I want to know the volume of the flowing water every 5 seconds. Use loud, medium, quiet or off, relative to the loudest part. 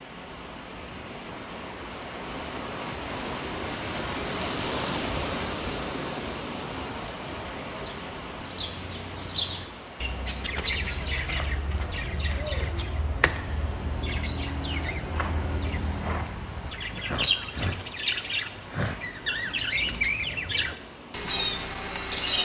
loud, loud, medium, medium, medium.